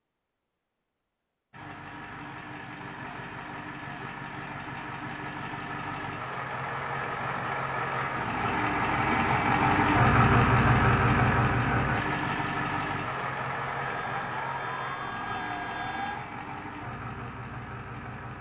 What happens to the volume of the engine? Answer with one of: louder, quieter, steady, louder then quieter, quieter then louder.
louder then quieter.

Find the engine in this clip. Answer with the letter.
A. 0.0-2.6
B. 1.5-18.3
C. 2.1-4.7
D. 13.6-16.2
B.